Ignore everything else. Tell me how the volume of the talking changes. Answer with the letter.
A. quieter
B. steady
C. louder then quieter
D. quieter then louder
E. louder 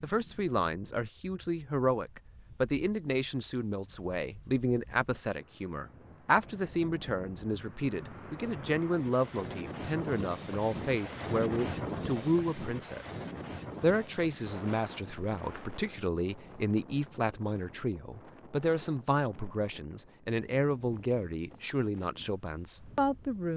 B.